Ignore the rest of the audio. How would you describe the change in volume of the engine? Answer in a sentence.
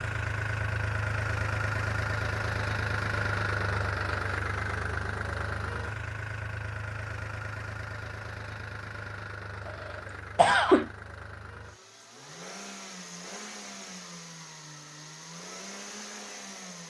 The loudness of the engine goes down.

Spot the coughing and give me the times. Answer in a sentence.
The coughing can be heard from 9.7 to 10.9 s.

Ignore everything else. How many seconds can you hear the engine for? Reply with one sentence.
The engine can be heard for 17 seconds in total.